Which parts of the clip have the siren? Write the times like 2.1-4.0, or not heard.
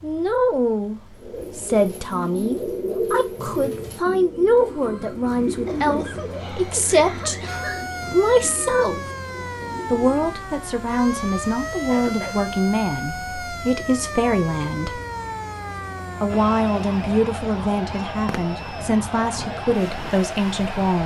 7.5-21.0.